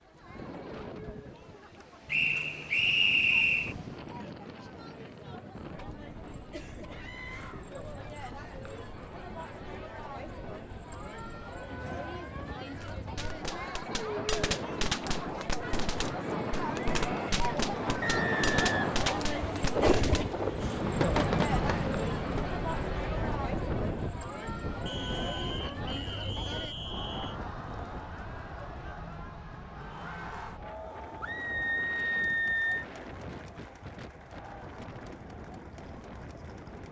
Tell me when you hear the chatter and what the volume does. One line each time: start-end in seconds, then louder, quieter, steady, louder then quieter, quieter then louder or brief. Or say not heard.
0.0-36.8 louder then quieter.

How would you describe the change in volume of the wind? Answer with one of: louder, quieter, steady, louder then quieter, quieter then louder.
louder then quieter.